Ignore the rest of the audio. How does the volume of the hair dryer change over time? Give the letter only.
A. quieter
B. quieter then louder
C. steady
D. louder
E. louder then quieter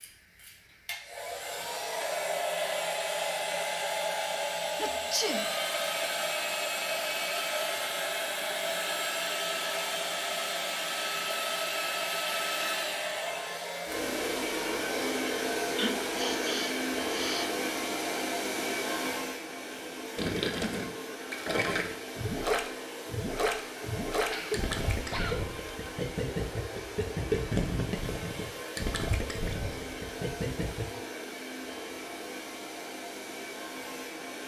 A.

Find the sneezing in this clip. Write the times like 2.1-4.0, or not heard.
4.8-5.5, 15.8-17.5, 24.2-25.5.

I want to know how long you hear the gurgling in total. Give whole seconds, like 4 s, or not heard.
11 s.